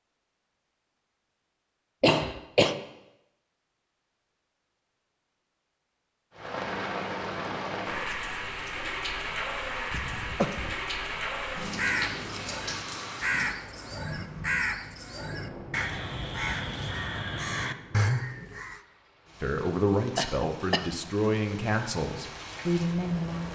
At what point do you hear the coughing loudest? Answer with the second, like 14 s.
2 s.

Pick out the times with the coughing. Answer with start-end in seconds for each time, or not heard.
2.0-2.8, 9.9-10.8, 20.1-20.9.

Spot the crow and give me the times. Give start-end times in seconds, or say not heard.
11.8-18.8.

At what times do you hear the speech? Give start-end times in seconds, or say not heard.
19.4-23.5.